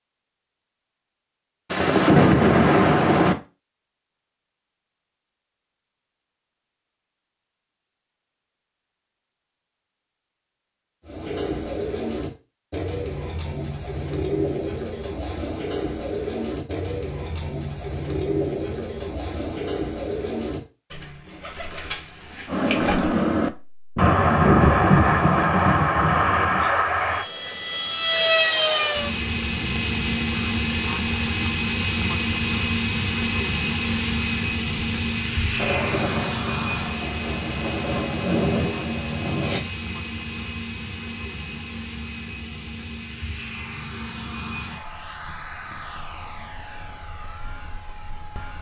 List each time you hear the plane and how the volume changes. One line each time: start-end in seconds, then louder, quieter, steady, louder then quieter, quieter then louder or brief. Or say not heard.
22.4-48.5 quieter.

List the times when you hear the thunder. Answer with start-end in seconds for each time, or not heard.
1.7-3.4, 23.9-26.6, 35.5-39.6.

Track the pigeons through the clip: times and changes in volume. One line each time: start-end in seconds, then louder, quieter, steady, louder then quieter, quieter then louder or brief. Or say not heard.
11.1-23.1 quieter.